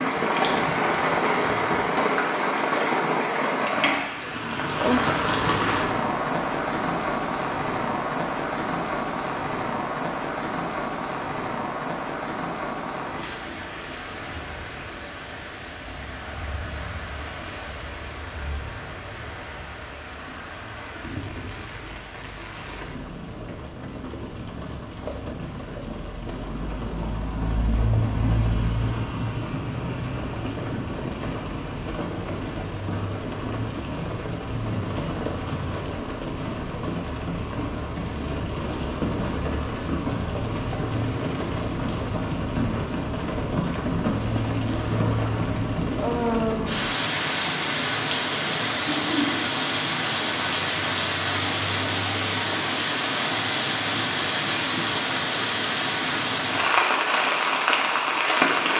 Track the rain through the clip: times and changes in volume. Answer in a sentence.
The rain can be heard from 0.0 to 58.7 s, getting quieter then louder.